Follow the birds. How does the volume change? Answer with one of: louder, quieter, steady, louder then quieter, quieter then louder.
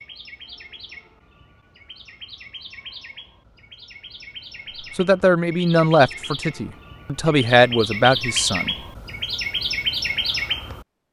louder.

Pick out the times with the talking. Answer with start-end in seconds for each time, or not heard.
5.0-8.8.